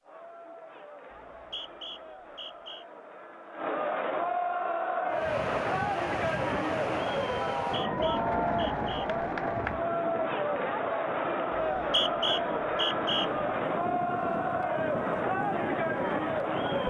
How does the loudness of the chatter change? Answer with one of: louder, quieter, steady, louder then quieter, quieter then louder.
louder.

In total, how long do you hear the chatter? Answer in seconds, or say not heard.
17 s.